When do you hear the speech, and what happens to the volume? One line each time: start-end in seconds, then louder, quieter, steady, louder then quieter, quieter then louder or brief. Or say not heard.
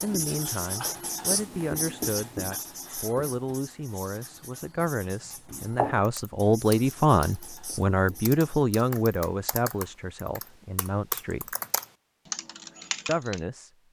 0.0-11.6 louder then quieter
13.1-13.7 brief.